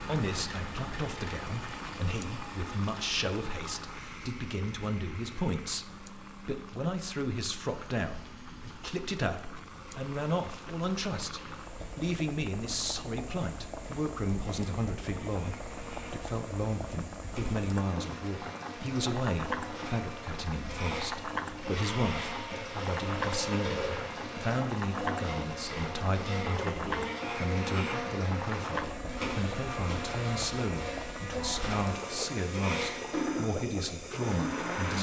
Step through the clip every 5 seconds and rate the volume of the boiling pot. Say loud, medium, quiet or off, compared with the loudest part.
medium, medium, medium, loud, loud, loud, loud.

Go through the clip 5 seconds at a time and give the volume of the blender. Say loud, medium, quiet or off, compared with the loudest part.
medium, quiet, quiet, medium, loud, loud, loud.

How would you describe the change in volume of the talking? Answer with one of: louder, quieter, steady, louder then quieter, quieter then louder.
steady.